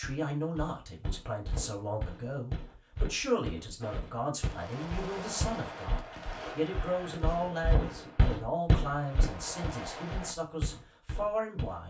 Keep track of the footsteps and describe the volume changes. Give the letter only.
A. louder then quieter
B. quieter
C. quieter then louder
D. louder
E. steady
A.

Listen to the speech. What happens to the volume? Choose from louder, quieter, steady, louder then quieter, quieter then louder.
steady.